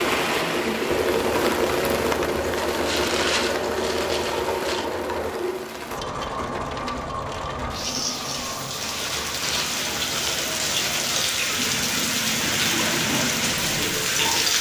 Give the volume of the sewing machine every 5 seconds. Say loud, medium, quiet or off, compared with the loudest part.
loud, medium, medium.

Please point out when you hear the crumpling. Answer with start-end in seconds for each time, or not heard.
2.6-4.8, 8.8-11.2.